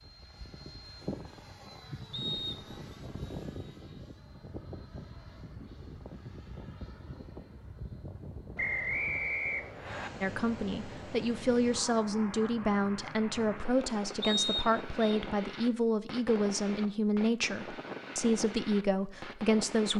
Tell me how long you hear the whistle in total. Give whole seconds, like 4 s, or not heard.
3 s.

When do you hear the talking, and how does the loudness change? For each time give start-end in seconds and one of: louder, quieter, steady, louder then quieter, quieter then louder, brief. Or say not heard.
10.2-19.9 steady.